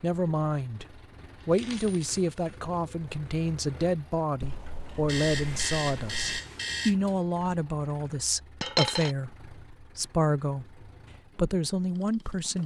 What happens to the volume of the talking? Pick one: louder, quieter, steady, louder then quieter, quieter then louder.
steady.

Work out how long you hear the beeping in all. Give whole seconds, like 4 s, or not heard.
2 s.